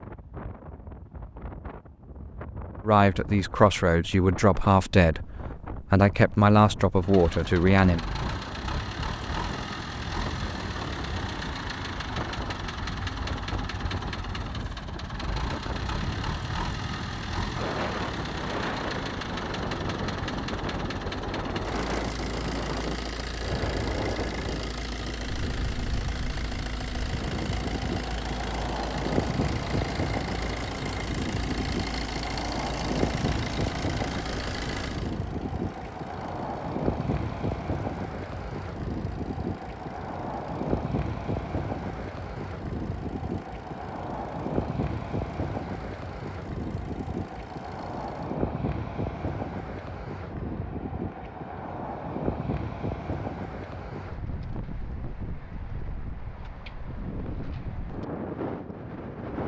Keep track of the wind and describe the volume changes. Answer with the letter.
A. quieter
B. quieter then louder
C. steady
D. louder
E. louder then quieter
D.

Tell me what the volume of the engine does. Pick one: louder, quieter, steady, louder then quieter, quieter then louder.
quieter.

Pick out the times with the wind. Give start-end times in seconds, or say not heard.
0.0-59.4.